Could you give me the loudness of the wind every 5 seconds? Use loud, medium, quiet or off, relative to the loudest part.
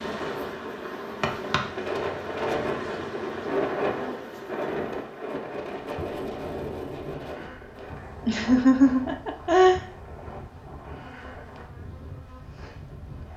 loud, medium, quiet.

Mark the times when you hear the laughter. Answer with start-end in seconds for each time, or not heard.
8.2-9.8.